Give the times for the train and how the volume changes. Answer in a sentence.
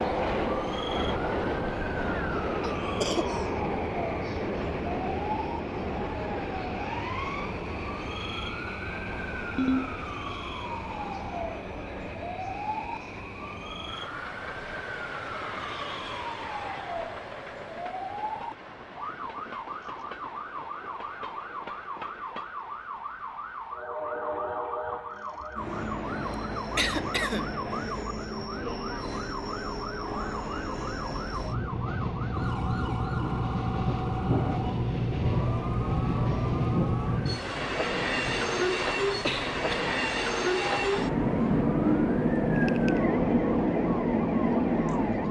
The train can be heard from 0.0 to 45.2 s, getting quieter then louder.